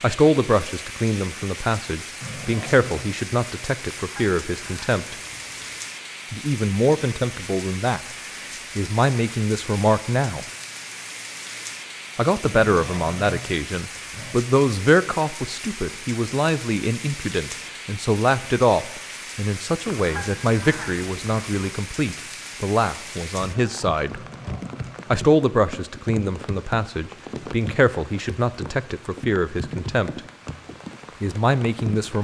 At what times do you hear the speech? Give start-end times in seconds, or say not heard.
0.0-5.2, 6.3-8.0, 8.8-10.4, 12.2-24.2, 25.1-30.2, 31.2-32.1.